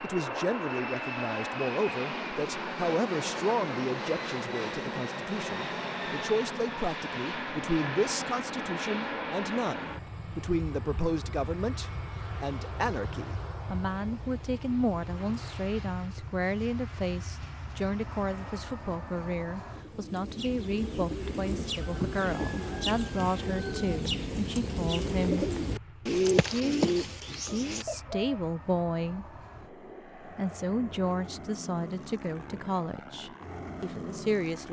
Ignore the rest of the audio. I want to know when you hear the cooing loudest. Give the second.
26 s.